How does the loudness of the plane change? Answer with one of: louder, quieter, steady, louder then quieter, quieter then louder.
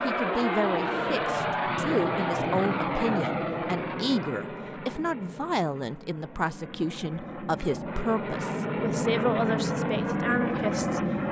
quieter then louder.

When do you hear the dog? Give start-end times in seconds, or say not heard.
not heard.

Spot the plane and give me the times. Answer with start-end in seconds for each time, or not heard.
0.0-11.2.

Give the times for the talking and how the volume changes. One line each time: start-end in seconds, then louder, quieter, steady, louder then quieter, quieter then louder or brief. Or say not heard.
0.1-11.0 steady.